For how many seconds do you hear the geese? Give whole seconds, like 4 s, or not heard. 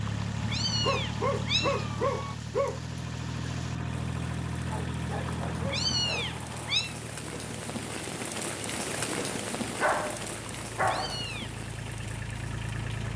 not heard.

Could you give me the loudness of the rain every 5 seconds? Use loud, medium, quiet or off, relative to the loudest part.
quiet, loud, medium.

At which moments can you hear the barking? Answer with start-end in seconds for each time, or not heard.
0.8-2.8, 4.7-6.2, 9.7-11.2.